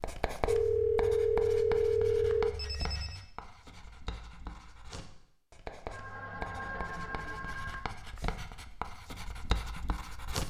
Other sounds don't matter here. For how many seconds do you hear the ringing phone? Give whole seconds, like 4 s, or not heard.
5 s.